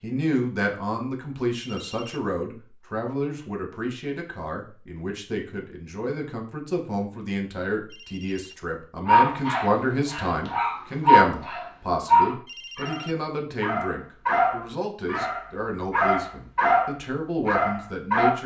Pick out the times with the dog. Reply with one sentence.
You can hear the dog from 9.1 to 18.4 s.